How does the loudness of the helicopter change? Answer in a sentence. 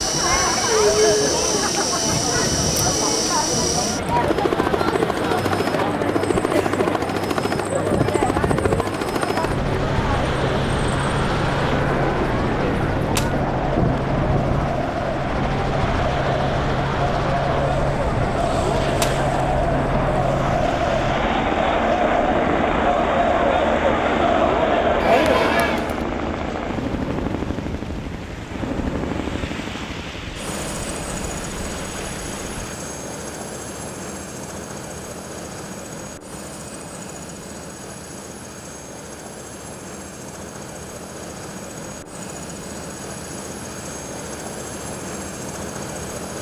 The volume of the helicopter goes down.